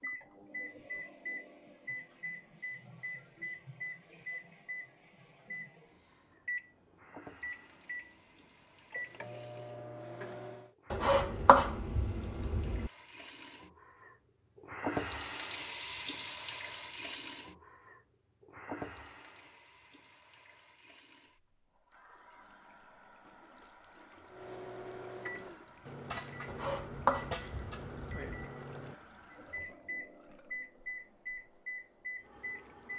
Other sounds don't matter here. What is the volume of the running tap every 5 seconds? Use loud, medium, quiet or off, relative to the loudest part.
quiet, quiet, loud, loud, quiet, quiet, quiet.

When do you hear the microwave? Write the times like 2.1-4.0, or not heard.
0.0-10.8, 24.2-32.9.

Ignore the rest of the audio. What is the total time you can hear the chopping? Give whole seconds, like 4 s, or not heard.
4 s.